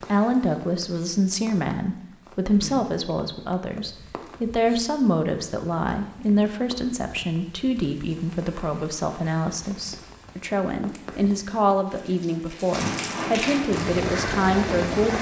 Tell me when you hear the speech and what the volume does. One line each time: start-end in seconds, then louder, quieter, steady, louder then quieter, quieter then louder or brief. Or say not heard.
0.0-15.1 steady.